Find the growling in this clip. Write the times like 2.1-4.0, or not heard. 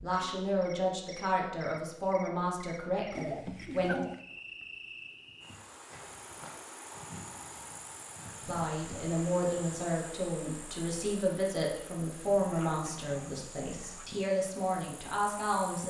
3.1-4.2, 12.2-14.1.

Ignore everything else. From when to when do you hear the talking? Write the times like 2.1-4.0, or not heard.
0.0-4.0, 8.4-15.8.